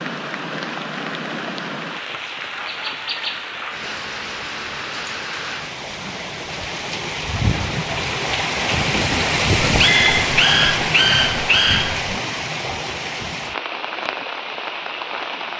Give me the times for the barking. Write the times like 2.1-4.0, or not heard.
9.7-12.2.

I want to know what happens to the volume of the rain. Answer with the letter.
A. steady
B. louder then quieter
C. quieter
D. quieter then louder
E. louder
B.